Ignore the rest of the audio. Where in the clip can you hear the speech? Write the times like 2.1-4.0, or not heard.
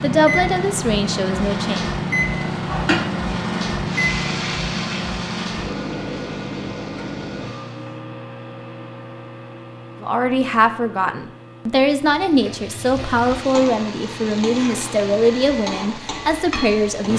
0.0-1.9, 10.0-17.1.